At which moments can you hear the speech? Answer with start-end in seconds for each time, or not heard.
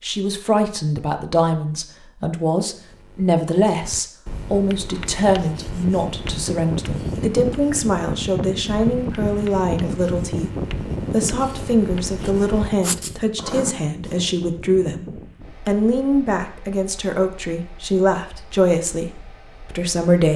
0.0-10.5, 11.1-19.1, 19.7-20.3.